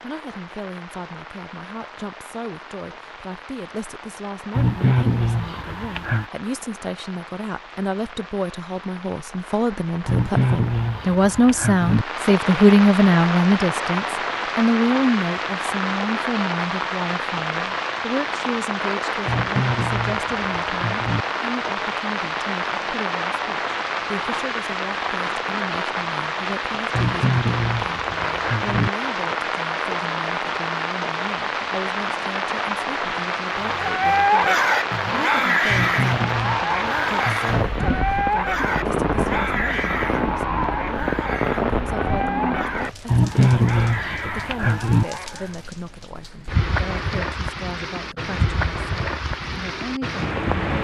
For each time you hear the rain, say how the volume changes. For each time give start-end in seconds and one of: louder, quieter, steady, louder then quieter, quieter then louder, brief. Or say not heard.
0.0-50.7 louder.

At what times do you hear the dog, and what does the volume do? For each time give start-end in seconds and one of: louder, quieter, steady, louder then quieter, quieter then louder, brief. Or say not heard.
33.5-45.6 quieter.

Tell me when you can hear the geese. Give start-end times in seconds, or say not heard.
4.5-6.2, 10.1-12.1, 19.2-21.2, 26.9-28.9, 35.6-37.6, 43.0-45.0.